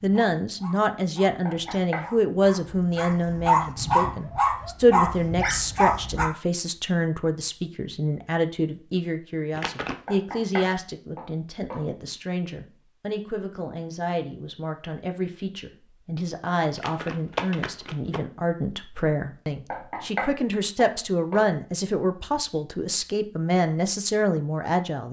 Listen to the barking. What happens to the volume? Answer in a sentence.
The loudness of the barking goes up.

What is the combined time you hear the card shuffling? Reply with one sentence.
You can hear the card shuffling for 2 seconds altogether.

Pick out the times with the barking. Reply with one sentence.
You can hear the barking from 0.0 to 6.2 s.